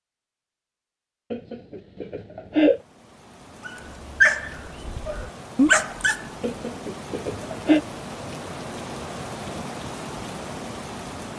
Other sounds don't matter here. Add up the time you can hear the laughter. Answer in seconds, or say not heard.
3 s.